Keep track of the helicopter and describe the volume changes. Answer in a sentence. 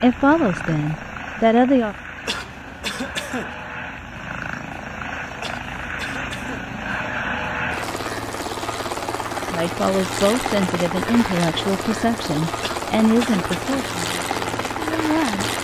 The loudness of the helicopter goes up.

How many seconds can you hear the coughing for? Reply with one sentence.
You can hear the coughing for 4 seconds altogether.